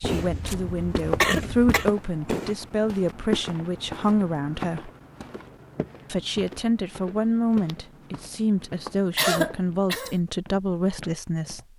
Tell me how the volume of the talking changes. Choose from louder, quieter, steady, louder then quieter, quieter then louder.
steady.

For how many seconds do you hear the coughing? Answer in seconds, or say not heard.
3 s.